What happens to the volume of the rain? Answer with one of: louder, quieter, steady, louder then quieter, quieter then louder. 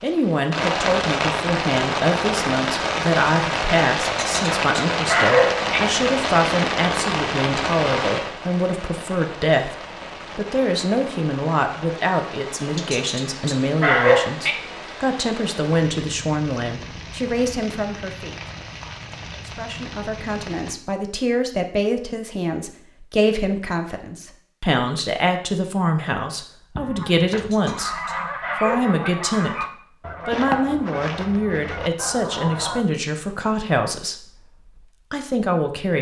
quieter.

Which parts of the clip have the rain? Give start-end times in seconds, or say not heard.
0.0-20.8.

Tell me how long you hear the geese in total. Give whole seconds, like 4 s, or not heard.
6 s.